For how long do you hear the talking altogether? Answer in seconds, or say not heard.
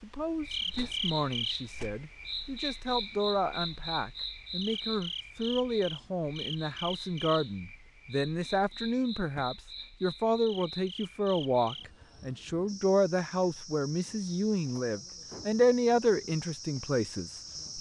18 s.